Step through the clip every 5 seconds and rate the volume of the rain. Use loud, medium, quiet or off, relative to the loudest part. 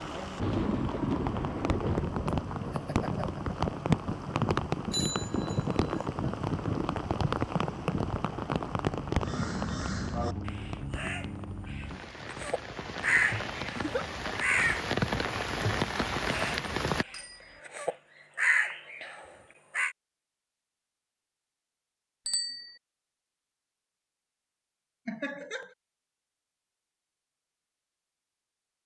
loud, loud, medium, loud, off, off.